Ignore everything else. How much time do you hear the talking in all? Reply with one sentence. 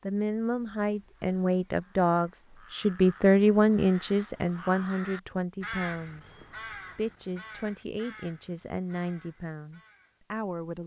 The talking can be heard for 11 seconds in total.